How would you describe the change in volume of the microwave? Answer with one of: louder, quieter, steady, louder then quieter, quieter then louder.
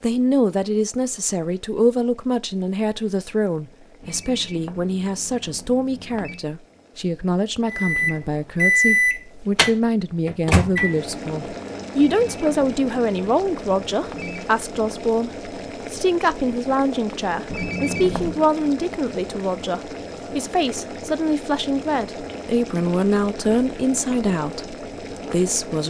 quieter.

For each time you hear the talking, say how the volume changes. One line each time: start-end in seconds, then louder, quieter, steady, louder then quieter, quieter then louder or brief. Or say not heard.
0.0-25.8 steady.